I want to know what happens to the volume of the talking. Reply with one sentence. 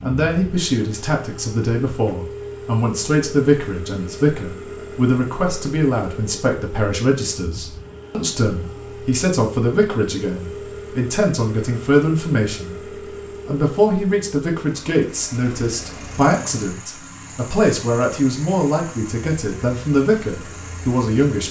The volume of the talking stays about the same.